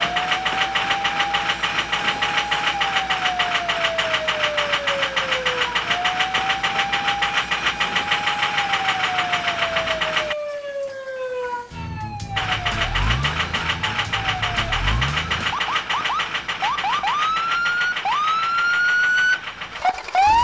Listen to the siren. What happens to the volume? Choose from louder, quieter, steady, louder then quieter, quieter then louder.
louder.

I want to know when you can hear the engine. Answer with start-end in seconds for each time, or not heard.
0.0-10.3, 12.3-20.3.